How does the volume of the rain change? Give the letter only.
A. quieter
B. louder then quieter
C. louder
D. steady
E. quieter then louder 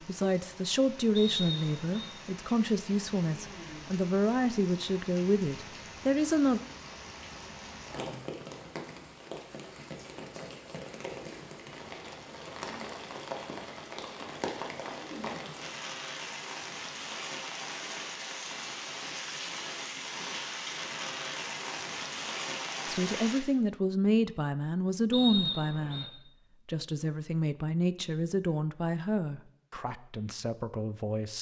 C.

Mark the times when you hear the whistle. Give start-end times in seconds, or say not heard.
1.1-2.1, 25.1-26.1.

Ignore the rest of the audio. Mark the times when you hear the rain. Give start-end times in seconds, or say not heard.
0.0-23.4.